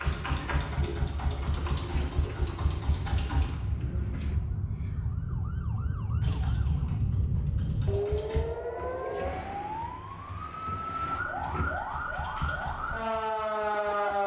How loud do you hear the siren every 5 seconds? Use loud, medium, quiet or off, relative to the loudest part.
medium, loud, loud.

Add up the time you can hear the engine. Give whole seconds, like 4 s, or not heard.
9 s.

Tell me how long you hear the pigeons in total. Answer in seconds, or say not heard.
6 s.